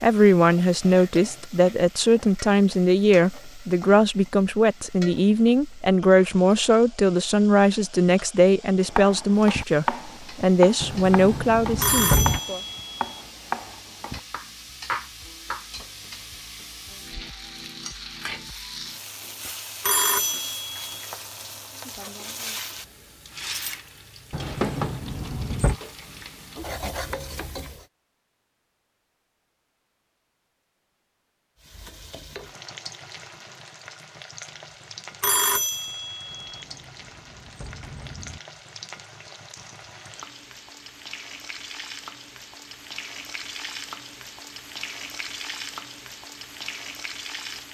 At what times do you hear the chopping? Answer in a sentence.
You can hear the chopping from 8.8 to 15.7 s.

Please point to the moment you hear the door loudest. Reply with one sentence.
The loudest moment of the door is at 12 seconds.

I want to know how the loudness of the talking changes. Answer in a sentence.
The loudness of the talking stays about the same.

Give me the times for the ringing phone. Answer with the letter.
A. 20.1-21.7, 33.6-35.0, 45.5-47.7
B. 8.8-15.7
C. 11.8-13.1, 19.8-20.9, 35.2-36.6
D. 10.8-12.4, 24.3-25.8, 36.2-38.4
C.